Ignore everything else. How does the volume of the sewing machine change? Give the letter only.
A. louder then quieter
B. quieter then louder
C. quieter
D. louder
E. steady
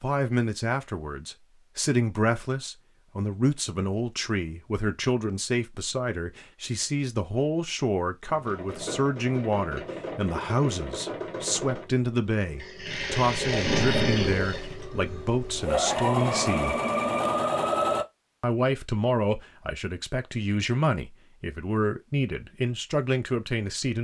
D.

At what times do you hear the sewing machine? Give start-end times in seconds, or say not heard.
8.2-18.1.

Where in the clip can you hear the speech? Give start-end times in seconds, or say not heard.
0.0-16.8, 18.4-24.0.